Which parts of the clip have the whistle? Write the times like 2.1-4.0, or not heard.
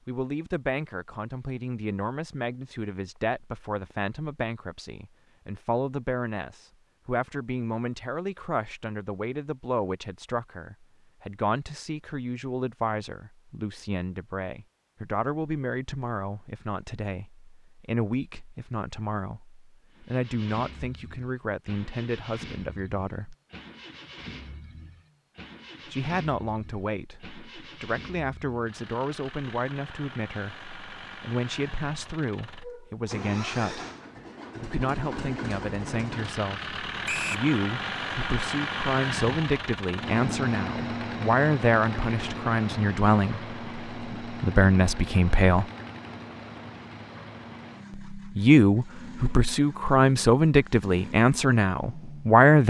37.0-37.5.